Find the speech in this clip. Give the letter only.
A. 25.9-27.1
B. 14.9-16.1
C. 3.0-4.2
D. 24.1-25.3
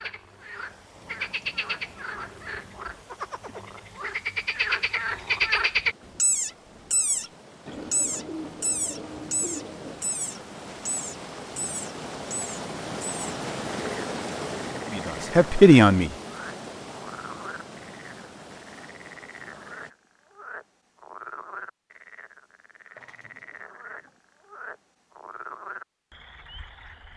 B.